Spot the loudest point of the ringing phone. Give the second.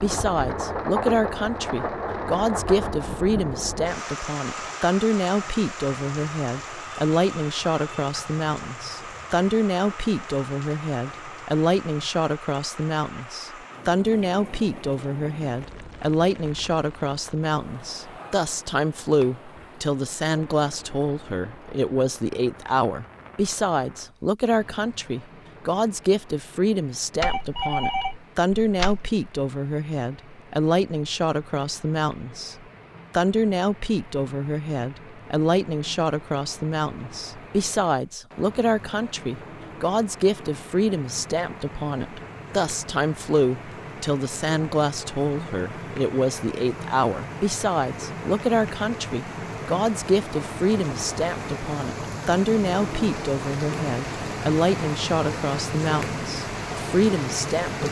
28 s.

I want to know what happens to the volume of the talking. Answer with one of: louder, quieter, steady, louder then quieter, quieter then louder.
steady.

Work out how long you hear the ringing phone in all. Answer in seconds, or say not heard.
2 s.